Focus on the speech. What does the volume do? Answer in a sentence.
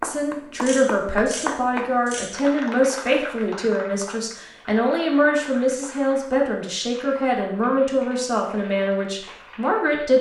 The volume of the speech stays about the same.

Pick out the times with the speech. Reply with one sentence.
You can hear the speech from 0.0 to 10.1 s.